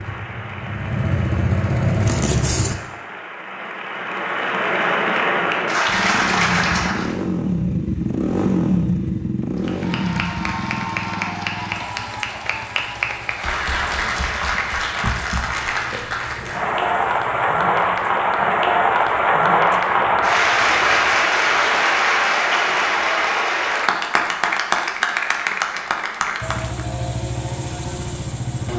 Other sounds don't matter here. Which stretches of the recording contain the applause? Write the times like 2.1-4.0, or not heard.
0.0-7.2, 9.6-26.9.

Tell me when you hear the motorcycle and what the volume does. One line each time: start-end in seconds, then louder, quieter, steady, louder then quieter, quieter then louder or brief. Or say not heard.
0.0-2.8 brief
5.8-21.1 quieter
26.4-28.7 brief.